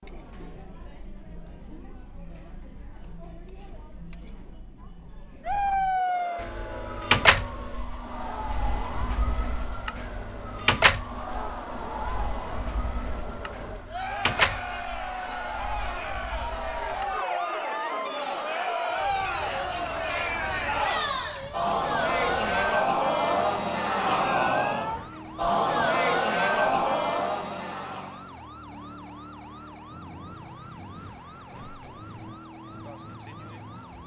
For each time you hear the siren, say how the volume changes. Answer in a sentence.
You can hear the siren from 5.5 to 34.0 s, getting quieter.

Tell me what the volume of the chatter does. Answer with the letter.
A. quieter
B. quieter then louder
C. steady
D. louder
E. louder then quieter
D.